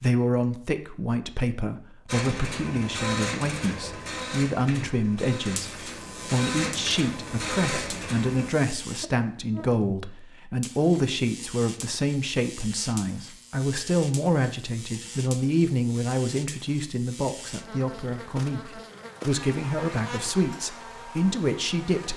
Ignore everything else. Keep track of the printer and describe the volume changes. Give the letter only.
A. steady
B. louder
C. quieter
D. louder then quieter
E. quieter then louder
E.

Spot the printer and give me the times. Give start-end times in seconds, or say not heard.
2.0-8.5.